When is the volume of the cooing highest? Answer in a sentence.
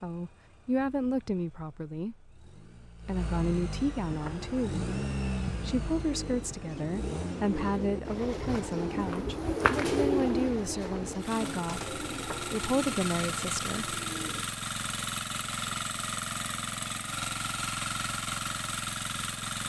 The volume of the cooing peaks at 10 seconds.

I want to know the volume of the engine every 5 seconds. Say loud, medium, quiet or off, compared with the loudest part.
medium, loud, loud, loud.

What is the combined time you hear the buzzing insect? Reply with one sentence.
The buzzing insect can't be heard in this clip.